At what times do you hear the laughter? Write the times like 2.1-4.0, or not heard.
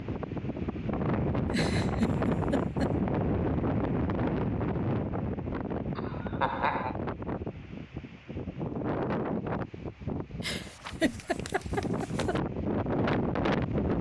1.5-3.0, 6.0-7.0, 10.4-12.3.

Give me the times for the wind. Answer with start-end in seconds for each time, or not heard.
0.0-13.9.